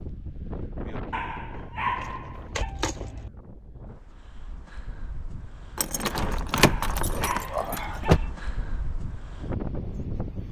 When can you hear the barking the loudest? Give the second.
2 s.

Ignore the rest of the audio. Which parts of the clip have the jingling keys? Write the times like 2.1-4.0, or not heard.
1.8-3.3, 5.8-8.2.